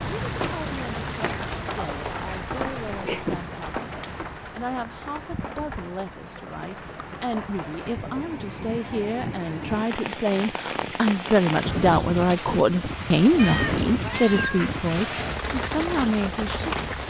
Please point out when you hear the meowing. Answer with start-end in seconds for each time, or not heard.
2.9-3.4, 13.3-15.4.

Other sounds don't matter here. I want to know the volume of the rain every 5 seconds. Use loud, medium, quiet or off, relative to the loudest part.
loud, medium, loud, loud.